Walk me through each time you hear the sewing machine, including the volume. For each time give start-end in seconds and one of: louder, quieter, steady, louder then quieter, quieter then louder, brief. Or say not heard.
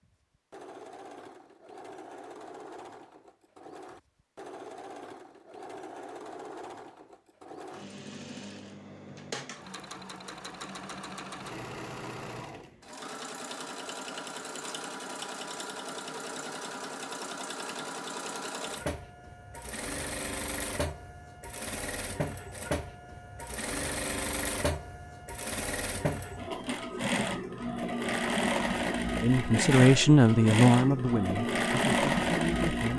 0.0-32.9 louder.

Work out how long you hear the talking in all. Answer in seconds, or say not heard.
4 s.